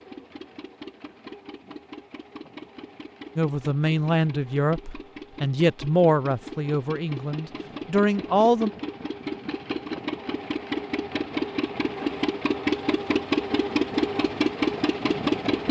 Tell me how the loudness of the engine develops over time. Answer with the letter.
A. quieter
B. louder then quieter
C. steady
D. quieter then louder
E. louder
E.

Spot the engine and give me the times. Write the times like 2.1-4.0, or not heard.
0.0-15.6.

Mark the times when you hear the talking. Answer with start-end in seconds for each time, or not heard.
3.4-8.7.